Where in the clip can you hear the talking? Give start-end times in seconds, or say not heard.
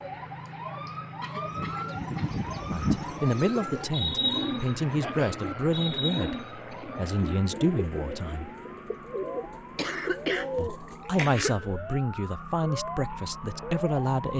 2.7-8.5, 10.6-14.3.